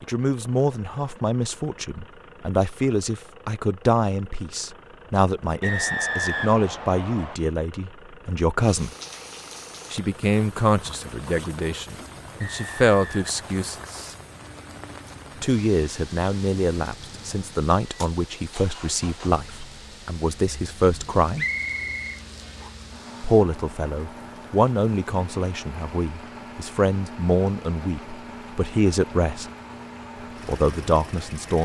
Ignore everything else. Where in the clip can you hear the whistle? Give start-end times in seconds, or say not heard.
5.6-7.3, 12.3-14.2, 21.4-22.7.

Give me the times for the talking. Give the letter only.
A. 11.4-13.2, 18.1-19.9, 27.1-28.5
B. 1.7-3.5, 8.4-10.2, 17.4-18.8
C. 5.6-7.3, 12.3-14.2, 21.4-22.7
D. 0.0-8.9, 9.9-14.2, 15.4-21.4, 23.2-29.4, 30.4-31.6
D.